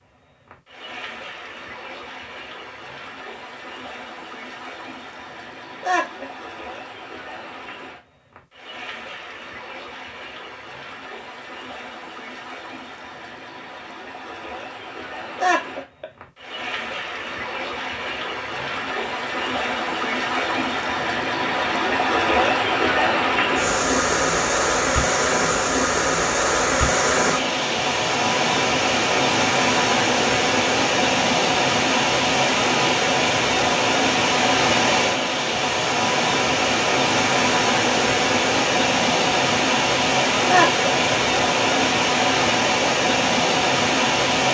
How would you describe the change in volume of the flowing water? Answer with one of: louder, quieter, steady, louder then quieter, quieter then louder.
louder.